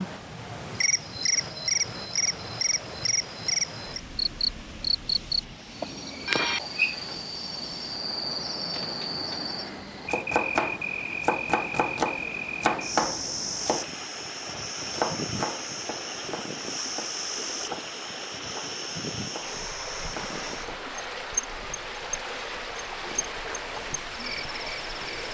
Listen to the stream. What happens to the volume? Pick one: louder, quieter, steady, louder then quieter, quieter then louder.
louder.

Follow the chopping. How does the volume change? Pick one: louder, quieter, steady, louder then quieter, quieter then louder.
quieter.